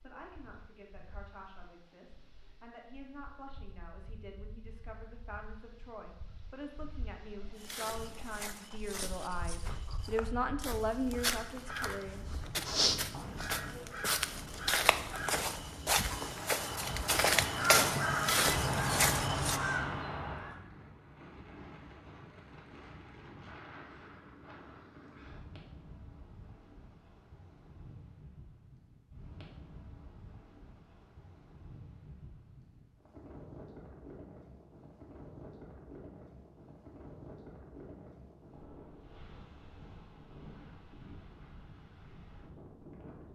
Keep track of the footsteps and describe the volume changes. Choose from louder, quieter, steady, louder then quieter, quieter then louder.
louder.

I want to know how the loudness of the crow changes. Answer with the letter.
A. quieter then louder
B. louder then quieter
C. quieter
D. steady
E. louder
E.